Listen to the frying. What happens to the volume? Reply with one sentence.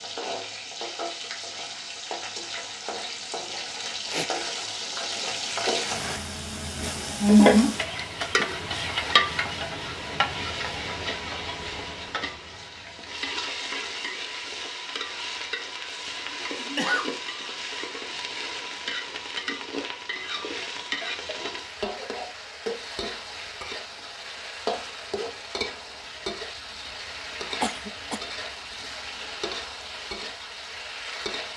The loudness of the frying goes up, then down.